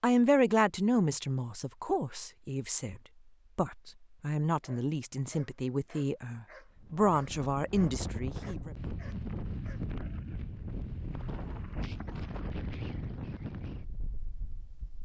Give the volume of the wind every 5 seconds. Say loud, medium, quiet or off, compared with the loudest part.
off, loud, loud.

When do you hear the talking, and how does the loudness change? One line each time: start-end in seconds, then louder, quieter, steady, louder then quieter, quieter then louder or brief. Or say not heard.
0.0-8.7 quieter then louder.